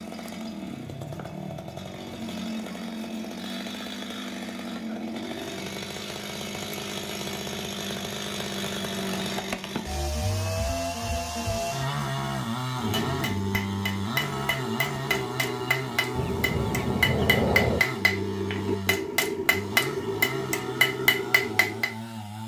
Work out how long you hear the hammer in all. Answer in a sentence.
You can hear the hammer for 9 seconds altogether.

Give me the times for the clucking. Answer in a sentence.
The clucking can be heard from 16.1 to 17.9 s.